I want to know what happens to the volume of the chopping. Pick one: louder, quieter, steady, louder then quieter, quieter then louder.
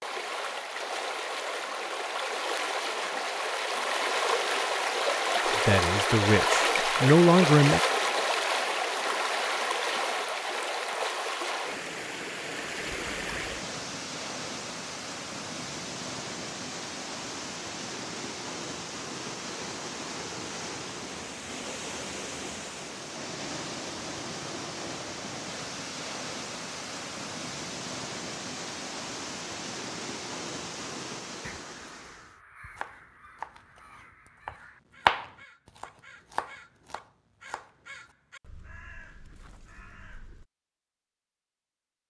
louder then quieter.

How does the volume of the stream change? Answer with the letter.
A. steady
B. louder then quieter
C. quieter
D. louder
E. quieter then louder
C.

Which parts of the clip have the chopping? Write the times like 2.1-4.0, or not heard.
32.8-38.1.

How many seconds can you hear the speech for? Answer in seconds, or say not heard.
2 s.